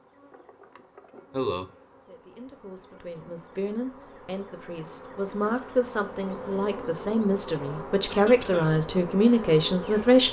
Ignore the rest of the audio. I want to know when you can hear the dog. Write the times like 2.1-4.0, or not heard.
not heard.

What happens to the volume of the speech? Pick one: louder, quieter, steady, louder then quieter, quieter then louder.
louder.